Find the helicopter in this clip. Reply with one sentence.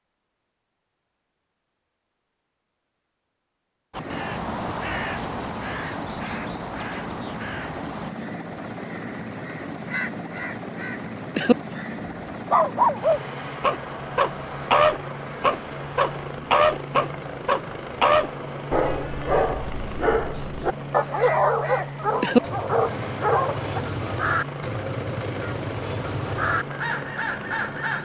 You can hear the helicopter from 4.0 to 27.9 s.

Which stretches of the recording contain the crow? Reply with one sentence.
You can hear the crow from 3.9 to 12.2 s and from 21.1 to 27.9 s.